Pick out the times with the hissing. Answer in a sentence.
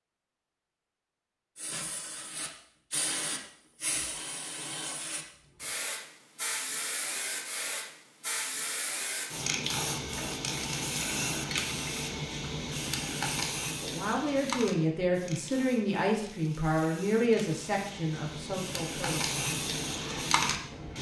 The hissing can be heard from 1.6 to 20.9 s.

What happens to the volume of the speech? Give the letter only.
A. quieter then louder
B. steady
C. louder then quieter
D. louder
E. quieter
E.